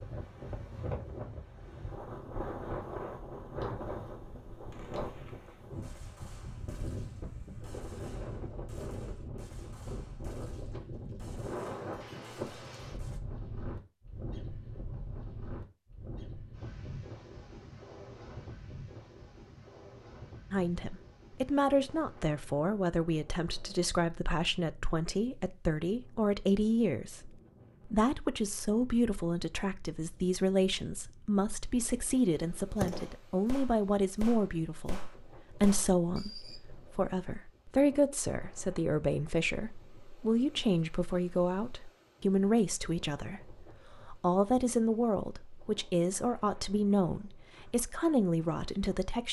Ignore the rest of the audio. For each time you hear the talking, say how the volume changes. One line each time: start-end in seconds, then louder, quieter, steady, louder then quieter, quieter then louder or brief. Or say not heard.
20.5-49.2 steady.